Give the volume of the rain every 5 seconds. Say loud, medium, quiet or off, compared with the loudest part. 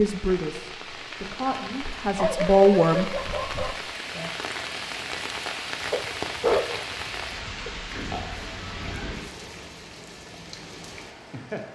loud, loud, medium.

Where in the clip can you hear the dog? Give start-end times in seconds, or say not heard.
2.0-3.8, 5.9-7.7.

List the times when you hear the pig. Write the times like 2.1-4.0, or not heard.
7.8-9.1.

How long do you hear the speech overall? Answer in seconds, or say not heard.
3 s.